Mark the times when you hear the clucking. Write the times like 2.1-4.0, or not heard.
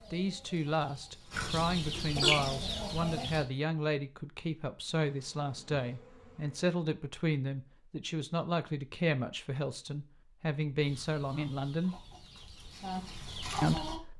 0.0-3.5, 10.8-14.0.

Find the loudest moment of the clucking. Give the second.
2 s.